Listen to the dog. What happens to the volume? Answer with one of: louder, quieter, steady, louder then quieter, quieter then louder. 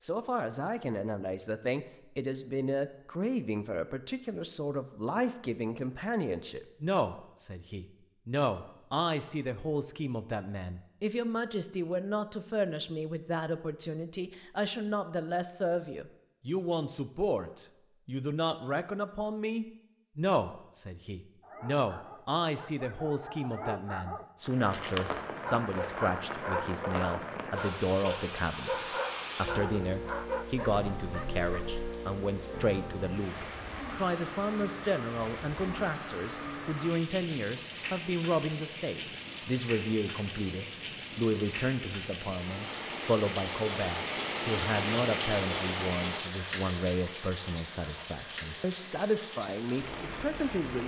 louder.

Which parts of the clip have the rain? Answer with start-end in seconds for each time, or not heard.
24.4-50.8.